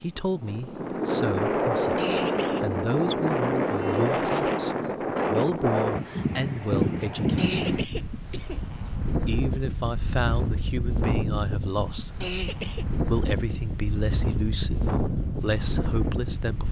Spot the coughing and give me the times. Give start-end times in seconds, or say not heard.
1.9-2.6, 7.3-8.6, 12.2-12.8.